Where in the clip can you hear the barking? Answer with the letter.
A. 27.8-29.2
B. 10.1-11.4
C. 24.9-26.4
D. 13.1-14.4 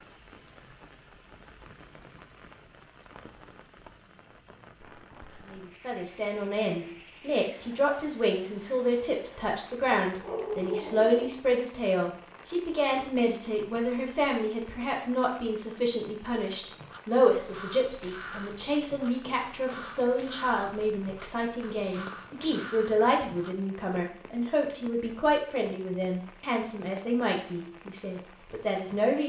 B.